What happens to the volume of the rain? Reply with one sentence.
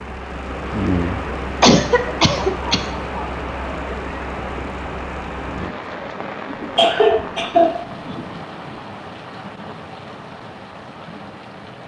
The loudness of the rain goes down.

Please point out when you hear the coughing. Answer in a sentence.
You can hear the coughing from 1.6 to 2.9 s and from 6.5 to 8.4 s.